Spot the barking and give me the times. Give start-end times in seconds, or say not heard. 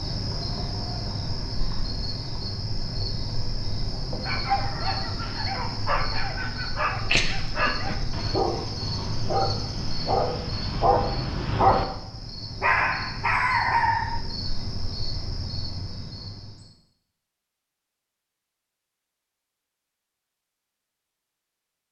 4.2-11.8, 12.6-14.2.